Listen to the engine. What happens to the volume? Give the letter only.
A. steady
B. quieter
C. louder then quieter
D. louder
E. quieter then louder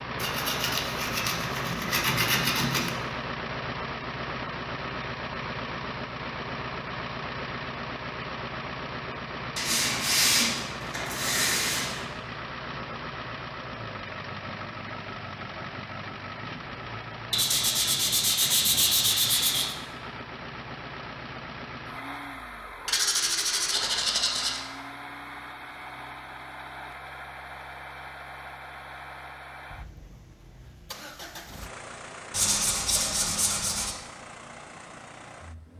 B.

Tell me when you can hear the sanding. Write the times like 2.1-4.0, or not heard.
0.1-3.0, 9.6-12.1, 17.3-19.8, 22.9-24.6, 32.3-34.0.